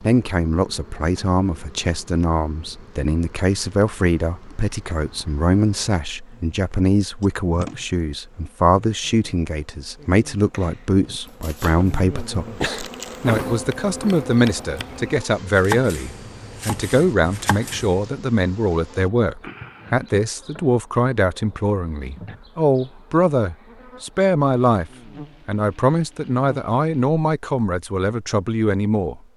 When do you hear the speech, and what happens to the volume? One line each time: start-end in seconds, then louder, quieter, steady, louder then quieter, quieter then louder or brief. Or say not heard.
0.0-29.1 steady.